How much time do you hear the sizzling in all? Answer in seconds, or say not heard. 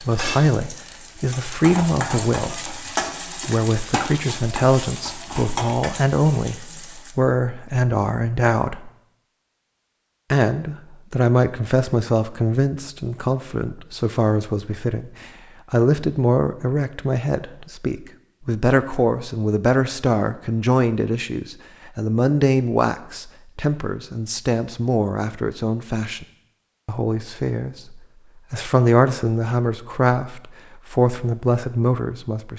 7 s.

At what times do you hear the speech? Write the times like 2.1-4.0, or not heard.
0.0-2.9, 3.5-8.9, 10.3-26.2, 26.9-32.5.